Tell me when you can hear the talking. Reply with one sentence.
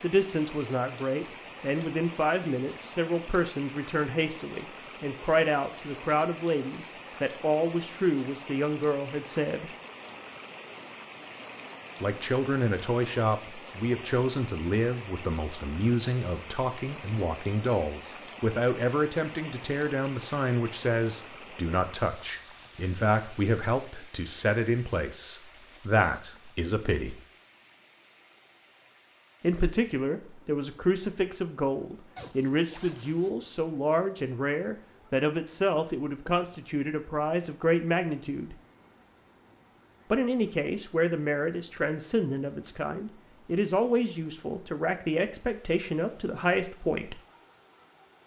You can hear the talking from 0.0 to 9.7 s, from 12.0 to 27.2 s, from 29.4 to 38.5 s and from 40.1 to 47.2 s.